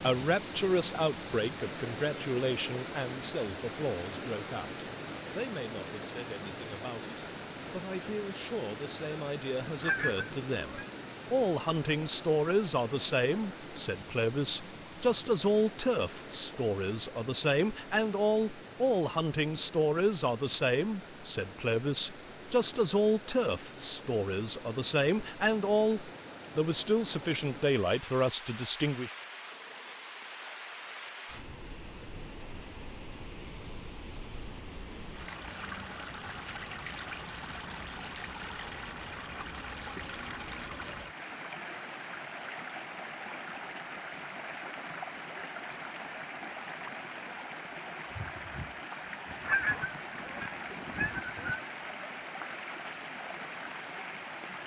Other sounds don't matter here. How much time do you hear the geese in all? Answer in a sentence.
The geese can be heard for 4 seconds in total.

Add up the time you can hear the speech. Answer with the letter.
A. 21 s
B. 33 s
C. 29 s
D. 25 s
C.